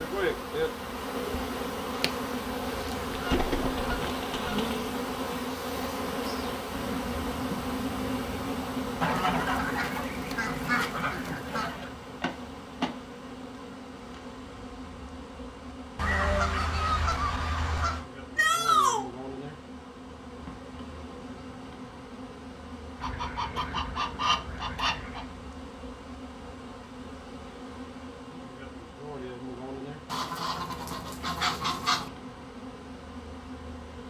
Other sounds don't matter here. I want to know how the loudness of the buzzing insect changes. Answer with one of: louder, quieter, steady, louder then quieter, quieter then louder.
quieter.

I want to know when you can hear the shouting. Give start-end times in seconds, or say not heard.
18.4-19.1.